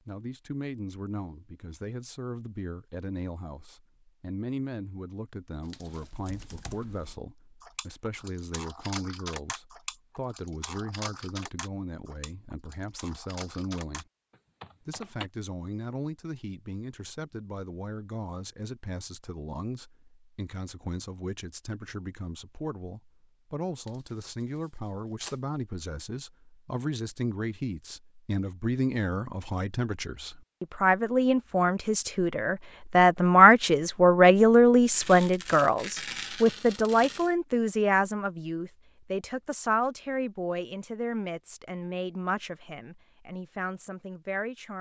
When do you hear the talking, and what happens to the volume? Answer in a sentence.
The talking can be heard from 0.1 to 14.1 s, at a steady volume; and from 14.8 to 44.7 s, getting louder then quieter.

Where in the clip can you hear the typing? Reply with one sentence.
You can hear the typing from 5.8 to 15.3 s.